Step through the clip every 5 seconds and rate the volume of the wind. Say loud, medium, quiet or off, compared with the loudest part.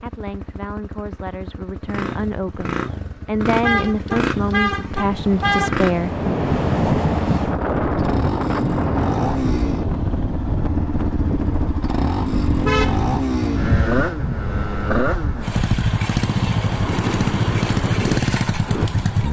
off, loud, medium, medium.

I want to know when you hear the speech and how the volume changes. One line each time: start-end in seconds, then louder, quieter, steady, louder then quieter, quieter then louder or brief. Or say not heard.
0.0-6.1 louder.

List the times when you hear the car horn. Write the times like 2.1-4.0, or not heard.
3.6-5.8, 12.4-14.2.